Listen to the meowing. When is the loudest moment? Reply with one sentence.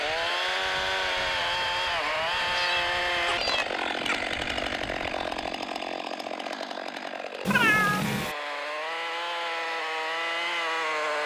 The volume of the meowing peaks at 8 seconds.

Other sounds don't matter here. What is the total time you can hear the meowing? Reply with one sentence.
You can hear the meowing for 3 seconds altogether.